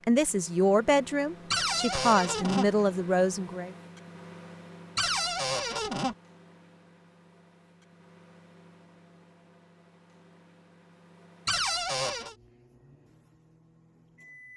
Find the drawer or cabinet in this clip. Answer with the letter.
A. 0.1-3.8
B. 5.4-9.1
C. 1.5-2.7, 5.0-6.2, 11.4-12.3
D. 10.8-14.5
C.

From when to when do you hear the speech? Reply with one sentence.
The speech can be heard from 0.1 to 3.8 s.